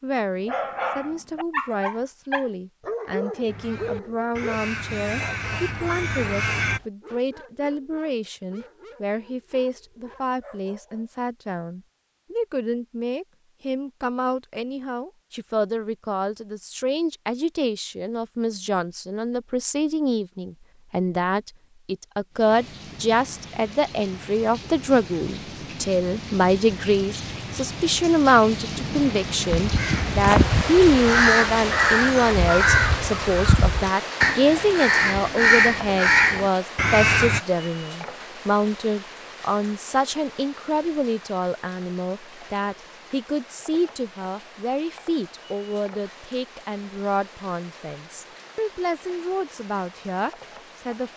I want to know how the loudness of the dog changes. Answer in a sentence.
The loudness of the dog goes down.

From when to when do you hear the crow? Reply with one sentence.
You can hear the crow from 3.5 to 6.8 s and from 29.5 to 37.4 s.